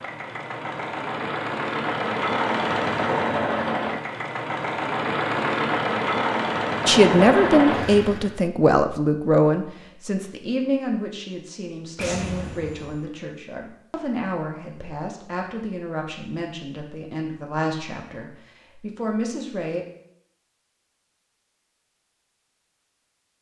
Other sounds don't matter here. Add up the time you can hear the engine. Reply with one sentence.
The engine can be heard for 8 seconds in total.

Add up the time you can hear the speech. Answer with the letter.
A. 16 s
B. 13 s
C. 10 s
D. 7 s
B.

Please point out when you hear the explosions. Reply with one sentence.
You can hear the explosions from 11.9 to 13.1 s.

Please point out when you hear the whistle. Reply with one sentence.
You can't hear the whistle here.